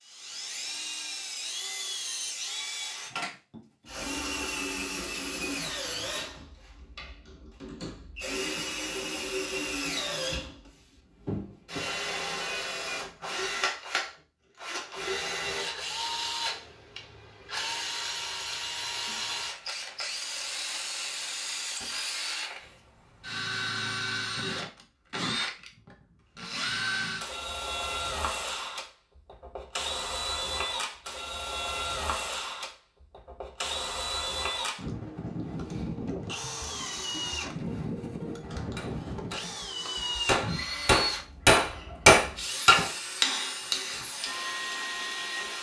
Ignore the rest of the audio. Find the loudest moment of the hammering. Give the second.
42 s.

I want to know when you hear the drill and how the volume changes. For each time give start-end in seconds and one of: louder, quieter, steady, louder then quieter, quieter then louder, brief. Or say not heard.
0.0-45.5 steady.